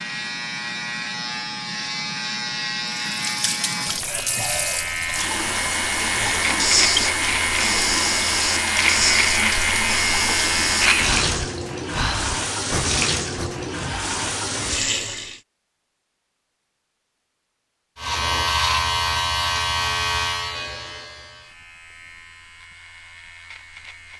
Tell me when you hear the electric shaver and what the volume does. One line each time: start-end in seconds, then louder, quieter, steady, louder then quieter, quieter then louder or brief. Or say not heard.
0.0-11.2 louder
17.9-24.1 quieter.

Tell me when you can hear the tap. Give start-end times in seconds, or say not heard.
2.9-15.4.